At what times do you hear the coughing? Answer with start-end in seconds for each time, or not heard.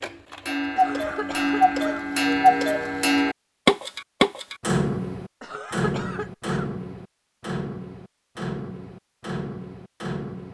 0.8-2.0, 5.4-6.7.